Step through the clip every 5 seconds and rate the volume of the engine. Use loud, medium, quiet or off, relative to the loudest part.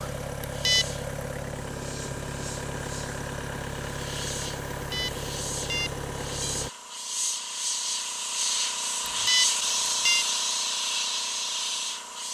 loud, loud, off.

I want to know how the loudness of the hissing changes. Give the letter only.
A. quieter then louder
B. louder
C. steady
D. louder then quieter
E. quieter
B.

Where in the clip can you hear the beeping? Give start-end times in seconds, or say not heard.
0.4-0.8, 4.7-6.6, 9.1-10.2.